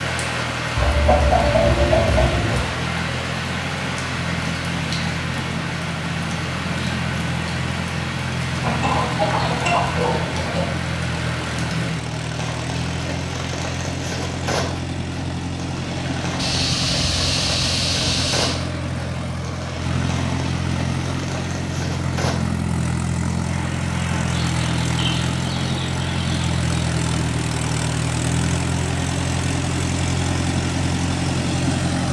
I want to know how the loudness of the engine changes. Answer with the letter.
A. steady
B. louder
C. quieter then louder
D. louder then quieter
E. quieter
B.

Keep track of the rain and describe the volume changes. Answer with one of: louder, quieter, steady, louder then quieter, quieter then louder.
quieter.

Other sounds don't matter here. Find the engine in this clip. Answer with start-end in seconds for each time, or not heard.
0.0-32.0.